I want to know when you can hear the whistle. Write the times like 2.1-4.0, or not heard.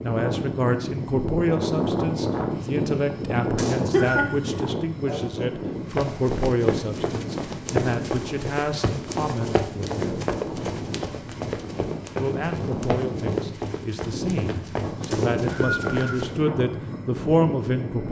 3.5-4.2, 15.1-16.2.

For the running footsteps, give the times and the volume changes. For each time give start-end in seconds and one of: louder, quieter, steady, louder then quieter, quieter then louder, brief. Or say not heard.
5.8-16.4 steady.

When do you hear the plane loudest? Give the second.
2 s.